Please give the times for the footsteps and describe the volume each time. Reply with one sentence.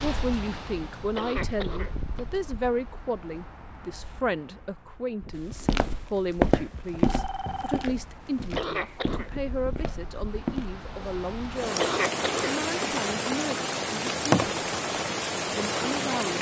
The footsteps can be heard from 5.3 to 10.7 s, getting quieter.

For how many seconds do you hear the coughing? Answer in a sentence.
The coughing can be heard for 3 seconds in total.